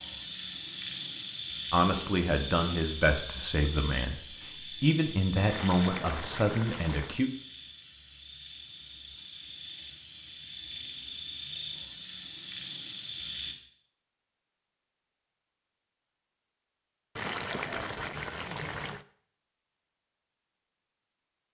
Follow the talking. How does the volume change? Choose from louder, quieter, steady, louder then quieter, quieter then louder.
steady.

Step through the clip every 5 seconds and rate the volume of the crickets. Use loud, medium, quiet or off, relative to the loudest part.
loud, medium, loud, off, off.